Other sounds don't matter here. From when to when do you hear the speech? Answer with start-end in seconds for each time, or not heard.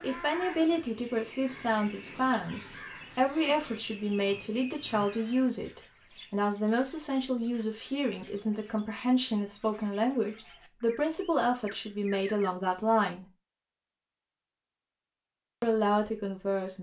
0.0-13.2, 15.6-16.7.